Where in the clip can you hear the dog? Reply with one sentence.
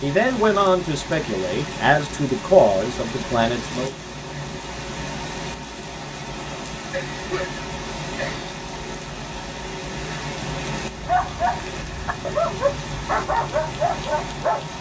The dog can be heard from 10.9 to 14.7 s.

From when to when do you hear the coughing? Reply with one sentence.
The coughing can be heard from 6.9 to 8.6 s.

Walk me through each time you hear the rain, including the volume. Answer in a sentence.
The rain can be heard from 0.0 to 14.7 s, at a steady volume.